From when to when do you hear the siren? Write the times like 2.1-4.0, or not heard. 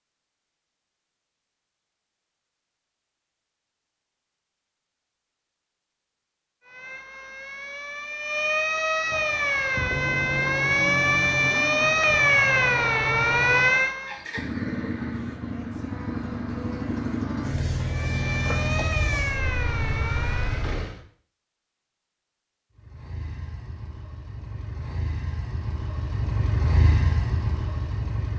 6.7-14.2, 17.9-20.7.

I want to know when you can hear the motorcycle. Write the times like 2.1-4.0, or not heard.
9.1-21.0, 22.8-28.3.